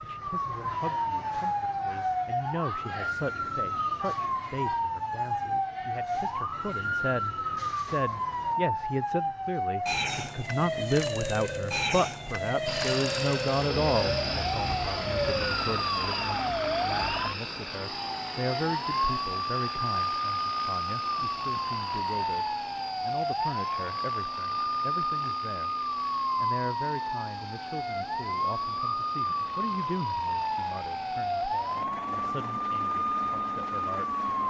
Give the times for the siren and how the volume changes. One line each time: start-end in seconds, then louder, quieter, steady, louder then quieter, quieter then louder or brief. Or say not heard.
0.0-34.4 steady.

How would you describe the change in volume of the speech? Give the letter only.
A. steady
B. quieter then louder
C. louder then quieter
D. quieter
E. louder
C.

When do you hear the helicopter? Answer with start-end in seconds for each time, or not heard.
12.7-34.4.